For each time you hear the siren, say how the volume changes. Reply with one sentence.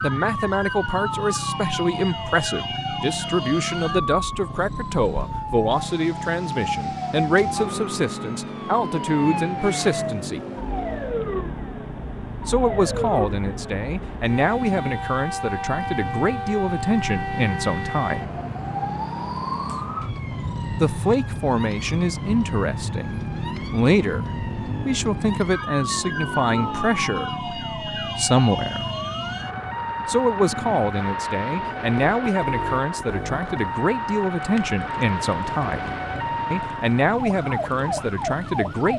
You can hear the siren from 0.0 to 38.9 s, at a steady volume.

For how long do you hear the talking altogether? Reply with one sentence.
The talking can be heard for 33 seconds in total.